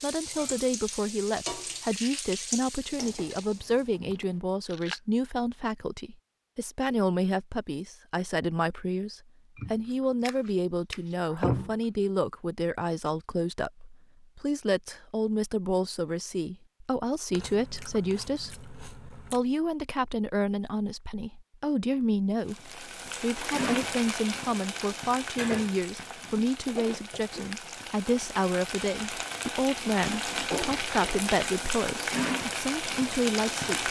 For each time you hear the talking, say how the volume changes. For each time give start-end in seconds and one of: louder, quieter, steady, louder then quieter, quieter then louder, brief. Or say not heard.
0.0-33.8 steady.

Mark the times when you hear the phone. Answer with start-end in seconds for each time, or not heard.
not heard.